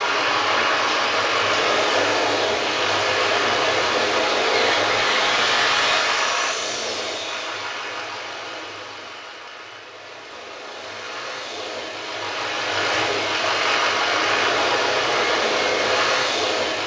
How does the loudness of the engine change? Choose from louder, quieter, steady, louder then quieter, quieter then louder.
quieter then louder.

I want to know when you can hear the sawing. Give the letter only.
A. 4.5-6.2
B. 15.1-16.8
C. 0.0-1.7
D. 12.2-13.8
A.